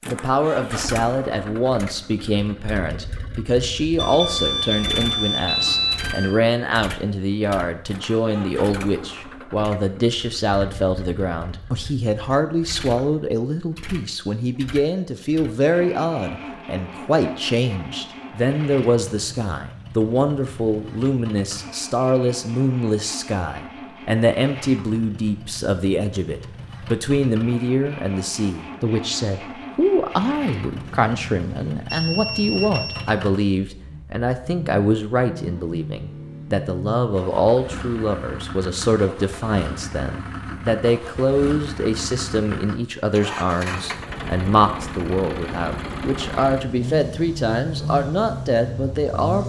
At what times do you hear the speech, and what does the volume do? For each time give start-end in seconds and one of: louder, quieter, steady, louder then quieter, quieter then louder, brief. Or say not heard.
0.1-49.4 steady.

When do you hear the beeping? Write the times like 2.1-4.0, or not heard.
4.0-6.3, 30.8-33.0.